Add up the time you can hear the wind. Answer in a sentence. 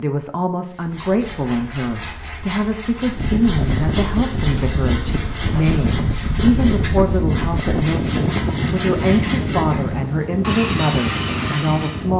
The wind can be heard for 9 seconds in total.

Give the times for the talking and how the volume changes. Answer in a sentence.
You can hear the talking from 0.0 to 12.1 s, at a steady volume.